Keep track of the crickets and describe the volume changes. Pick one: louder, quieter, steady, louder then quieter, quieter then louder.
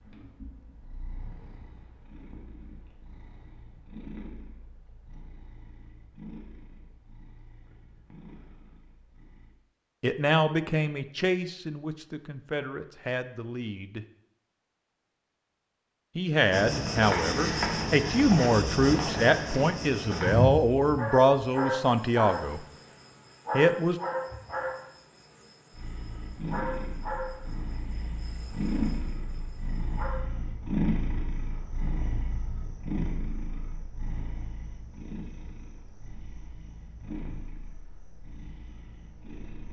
quieter.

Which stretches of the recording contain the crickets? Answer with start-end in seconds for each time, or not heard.
16.5-39.4.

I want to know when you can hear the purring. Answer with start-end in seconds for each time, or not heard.
0.0-9.6, 25.8-39.6.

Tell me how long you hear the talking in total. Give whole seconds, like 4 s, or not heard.
11 s.